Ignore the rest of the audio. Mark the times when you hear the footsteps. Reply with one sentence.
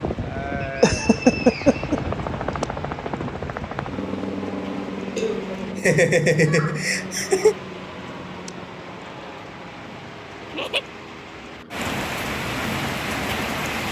The footsteps can't be heard in this clip.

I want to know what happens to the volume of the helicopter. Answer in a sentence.
The volume of the helicopter goes down.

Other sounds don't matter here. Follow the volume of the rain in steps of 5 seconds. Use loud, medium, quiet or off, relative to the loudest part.
quiet, quiet, loud.